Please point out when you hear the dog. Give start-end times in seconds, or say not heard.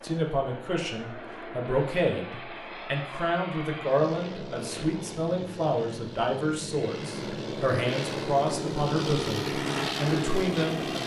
not heard.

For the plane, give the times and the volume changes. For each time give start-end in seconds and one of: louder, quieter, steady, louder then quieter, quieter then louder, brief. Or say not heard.
0.0-11.0 louder.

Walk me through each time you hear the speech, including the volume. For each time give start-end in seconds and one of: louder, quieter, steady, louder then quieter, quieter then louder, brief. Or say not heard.
0.0-11.0 steady.